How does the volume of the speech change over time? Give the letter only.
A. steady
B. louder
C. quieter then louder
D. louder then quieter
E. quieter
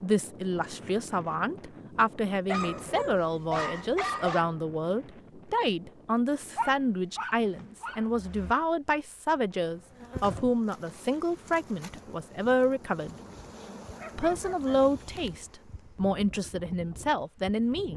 A.